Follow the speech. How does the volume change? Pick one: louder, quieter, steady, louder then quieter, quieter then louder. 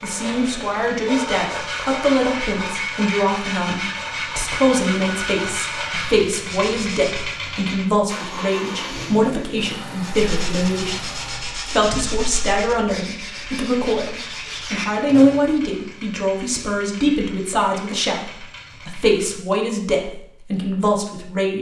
steady.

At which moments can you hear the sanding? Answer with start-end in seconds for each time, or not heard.
0.0-7.3, 10.0-15.4.